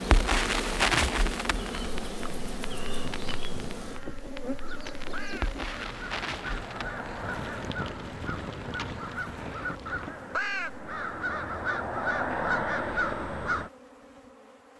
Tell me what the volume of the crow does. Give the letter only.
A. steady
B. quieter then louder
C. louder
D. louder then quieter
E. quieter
C.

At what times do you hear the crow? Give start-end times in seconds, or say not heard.
2.5-13.7.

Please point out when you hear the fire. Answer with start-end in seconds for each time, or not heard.
0.0-10.2.